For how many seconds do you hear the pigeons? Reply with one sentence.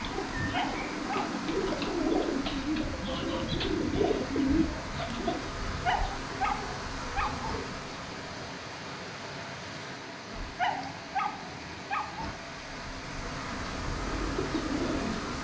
You can hear the pigeons for 7 seconds altogether.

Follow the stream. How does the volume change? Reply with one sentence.
The volume of the stream stays about the same.